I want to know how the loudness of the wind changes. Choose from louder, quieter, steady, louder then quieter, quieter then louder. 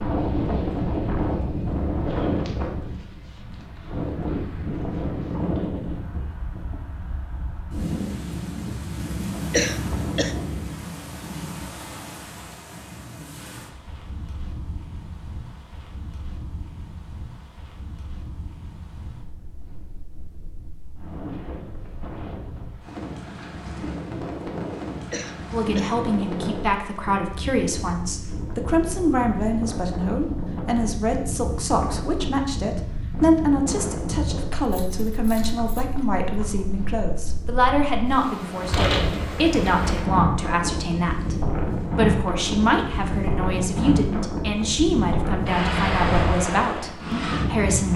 quieter then louder.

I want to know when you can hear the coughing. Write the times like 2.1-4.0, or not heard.
9.5-10.3, 25.1-26.1.